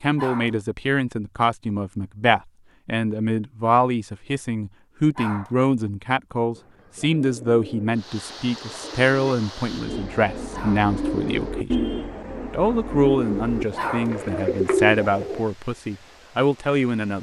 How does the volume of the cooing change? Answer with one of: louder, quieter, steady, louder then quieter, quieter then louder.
louder.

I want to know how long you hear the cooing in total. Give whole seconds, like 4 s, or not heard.
9 s.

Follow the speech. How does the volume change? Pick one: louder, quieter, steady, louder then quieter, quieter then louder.
steady.